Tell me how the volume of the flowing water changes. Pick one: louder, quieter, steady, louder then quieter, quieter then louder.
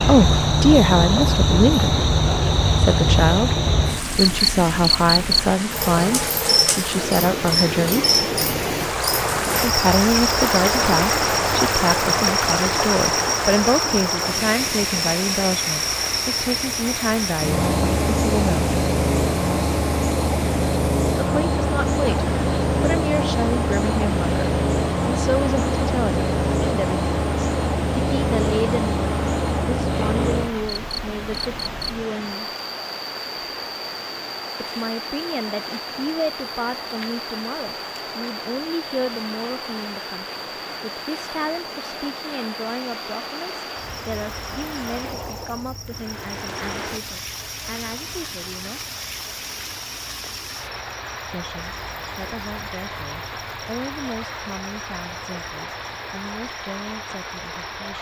quieter.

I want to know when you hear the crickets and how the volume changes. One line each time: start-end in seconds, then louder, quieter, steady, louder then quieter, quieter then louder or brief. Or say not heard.
0.0-57.9 quieter.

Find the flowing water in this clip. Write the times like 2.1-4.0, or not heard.
0.0-57.9.